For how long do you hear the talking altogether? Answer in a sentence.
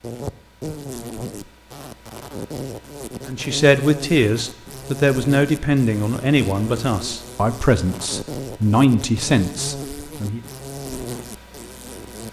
The talking can be heard for 7 seconds in total.